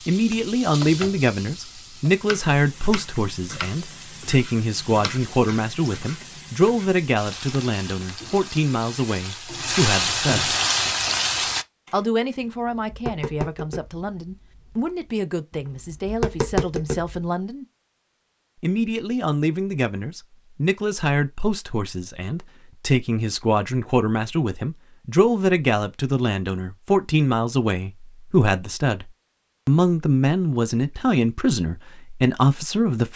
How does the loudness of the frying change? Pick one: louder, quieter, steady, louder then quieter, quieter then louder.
louder.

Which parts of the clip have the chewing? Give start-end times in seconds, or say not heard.
not heard.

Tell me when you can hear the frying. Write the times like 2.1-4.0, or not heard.
0.0-11.7.